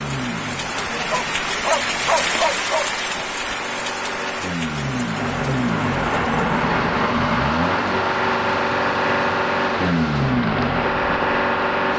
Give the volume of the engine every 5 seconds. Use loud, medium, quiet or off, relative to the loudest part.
medium, loud, loud.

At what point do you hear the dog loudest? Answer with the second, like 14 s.
2 s.